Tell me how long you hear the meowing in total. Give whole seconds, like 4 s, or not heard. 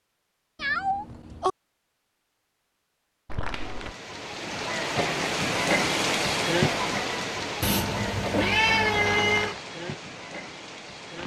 3 s.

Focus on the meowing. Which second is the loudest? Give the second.
9 s.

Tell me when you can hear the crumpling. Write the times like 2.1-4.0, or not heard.
3.2-4.0, 8.7-9.7.